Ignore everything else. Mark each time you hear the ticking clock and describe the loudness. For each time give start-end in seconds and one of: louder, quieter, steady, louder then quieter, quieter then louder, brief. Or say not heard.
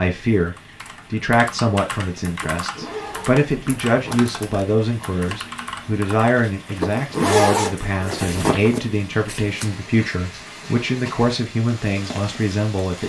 not heard.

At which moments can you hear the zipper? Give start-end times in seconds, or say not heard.
2.5-4.3, 6.8-8.8.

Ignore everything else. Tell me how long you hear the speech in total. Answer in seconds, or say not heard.
13 s.